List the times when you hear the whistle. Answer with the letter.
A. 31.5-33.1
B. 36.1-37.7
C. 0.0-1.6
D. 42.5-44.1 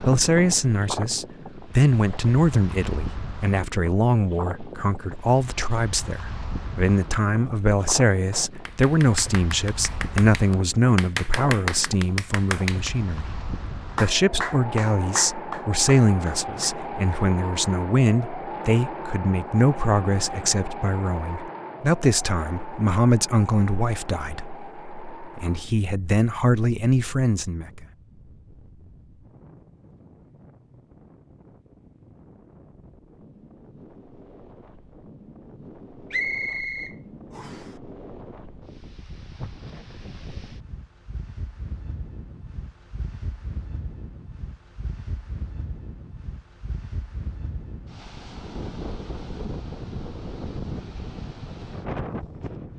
B.